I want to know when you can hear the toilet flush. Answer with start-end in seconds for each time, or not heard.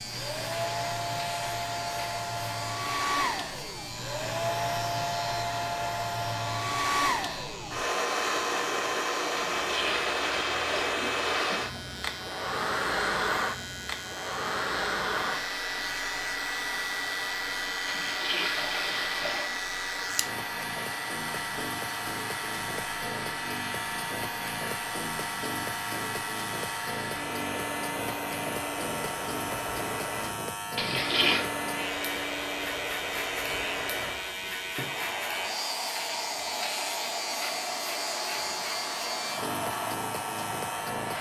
9.3-11.7, 17.9-19.6, 30.8-31.4.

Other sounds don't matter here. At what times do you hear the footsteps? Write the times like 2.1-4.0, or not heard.
not heard.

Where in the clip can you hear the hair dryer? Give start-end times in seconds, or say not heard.
0.0-41.1.